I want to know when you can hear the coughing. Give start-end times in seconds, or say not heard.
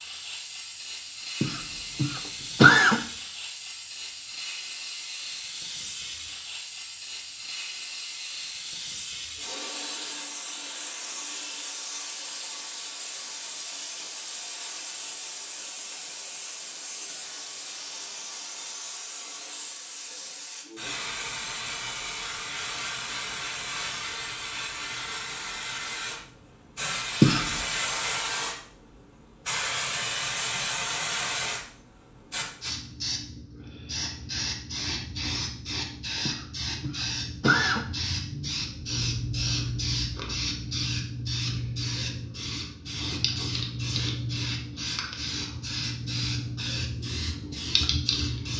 1.4-3.0, 27.2-27.6, 36.2-37.9.